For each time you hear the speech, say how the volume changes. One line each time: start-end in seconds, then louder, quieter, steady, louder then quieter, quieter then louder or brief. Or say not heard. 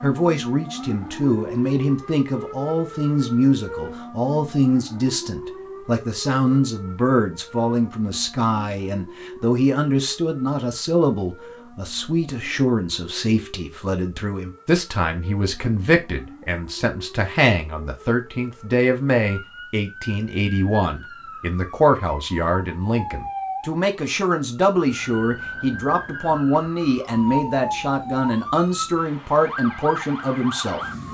0.0-30.8 steady.